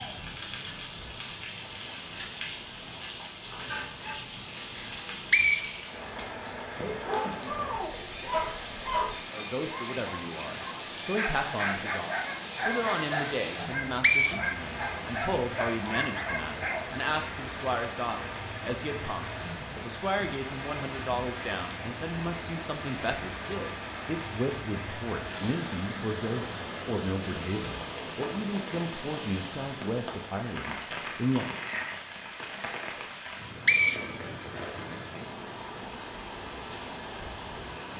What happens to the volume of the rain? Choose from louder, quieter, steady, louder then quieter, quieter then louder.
steady.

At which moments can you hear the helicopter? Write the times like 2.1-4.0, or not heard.
not heard.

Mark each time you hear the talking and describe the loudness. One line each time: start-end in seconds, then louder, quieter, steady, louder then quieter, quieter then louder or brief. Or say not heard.
9.3-31.6 steady.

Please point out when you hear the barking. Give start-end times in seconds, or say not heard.
7.0-16.9.